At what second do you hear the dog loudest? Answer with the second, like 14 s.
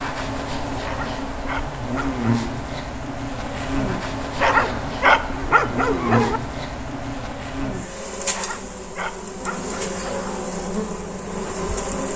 5 s.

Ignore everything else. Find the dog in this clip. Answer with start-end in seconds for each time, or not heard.
0.8-2.2, 4.3-6.4, 8.3-10.3.